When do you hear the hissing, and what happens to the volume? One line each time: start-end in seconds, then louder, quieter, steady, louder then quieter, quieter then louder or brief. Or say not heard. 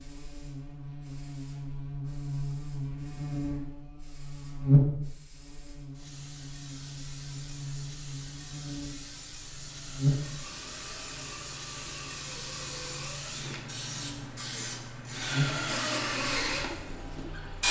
0.0-17.6 louder.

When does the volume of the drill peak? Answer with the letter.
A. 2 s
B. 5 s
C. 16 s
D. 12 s
C.